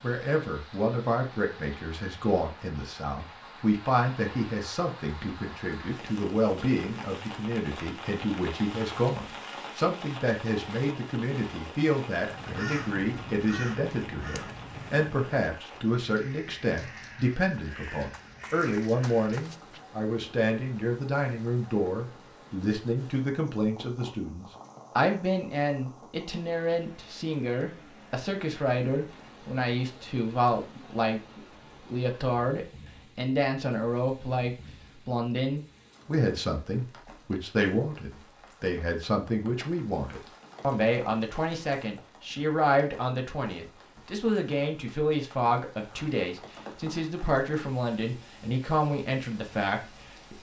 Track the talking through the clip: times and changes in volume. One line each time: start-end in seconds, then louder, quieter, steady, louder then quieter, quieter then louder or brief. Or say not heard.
0.0-50.3 steady.